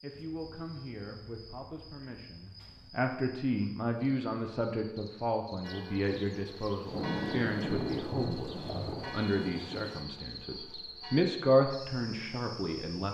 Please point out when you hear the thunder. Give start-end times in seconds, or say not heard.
6.9-10.1.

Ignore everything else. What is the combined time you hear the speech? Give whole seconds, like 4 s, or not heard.
13 s.